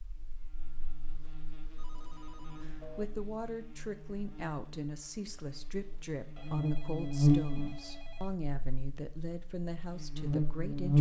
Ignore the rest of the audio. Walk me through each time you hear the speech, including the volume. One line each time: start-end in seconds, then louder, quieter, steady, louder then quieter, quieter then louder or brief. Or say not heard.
2.6-10.9 steady.